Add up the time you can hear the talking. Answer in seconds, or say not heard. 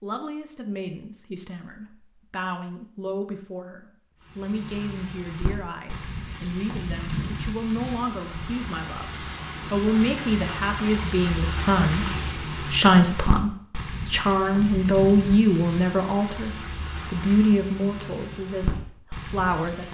20 s.